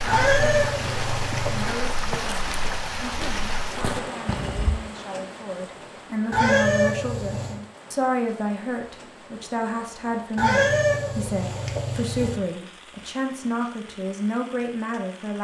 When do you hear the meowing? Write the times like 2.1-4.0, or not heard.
0.1-1.8, 6.3-7.6, 10.3-12.4.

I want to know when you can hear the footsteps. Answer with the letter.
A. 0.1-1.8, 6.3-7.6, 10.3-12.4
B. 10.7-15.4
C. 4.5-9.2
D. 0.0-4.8
D.